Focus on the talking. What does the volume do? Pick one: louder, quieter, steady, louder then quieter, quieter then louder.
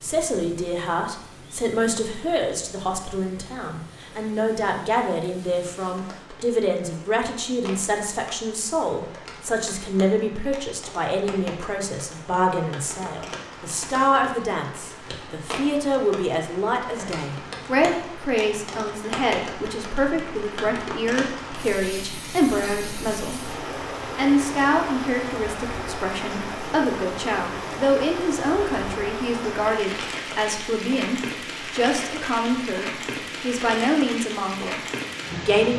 steady.